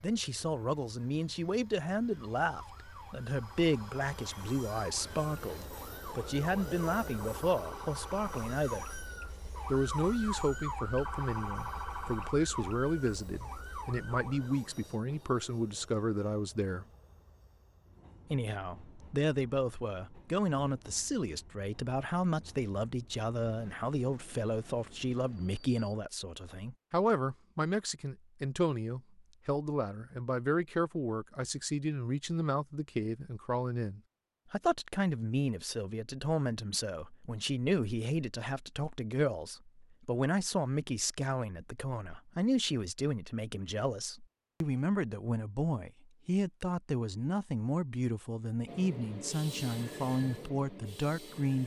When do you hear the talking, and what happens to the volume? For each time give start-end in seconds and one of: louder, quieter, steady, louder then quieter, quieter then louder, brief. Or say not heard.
0.0-8.8 steady
9.7-16.9 steady
18.3-51.6 steady.